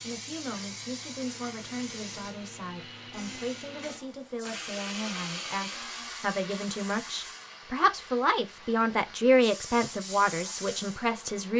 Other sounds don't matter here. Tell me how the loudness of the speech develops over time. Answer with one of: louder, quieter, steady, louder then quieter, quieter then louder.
louder.